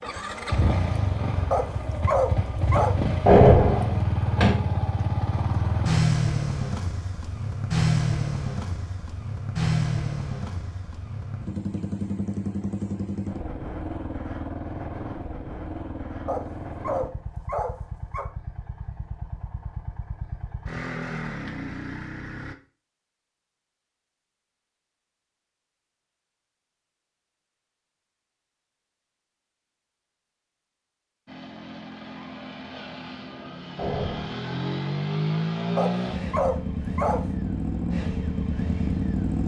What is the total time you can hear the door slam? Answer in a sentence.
You can hear the door slam for 2 seconds altogether.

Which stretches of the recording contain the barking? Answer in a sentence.
You can hear the barking from 1.5 to 3.0 s, from 16.2 to 18.2 s and from 35.8 to 37.2 s.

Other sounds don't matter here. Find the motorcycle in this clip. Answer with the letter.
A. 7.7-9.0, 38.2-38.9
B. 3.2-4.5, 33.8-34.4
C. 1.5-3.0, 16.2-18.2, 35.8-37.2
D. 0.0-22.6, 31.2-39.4
D.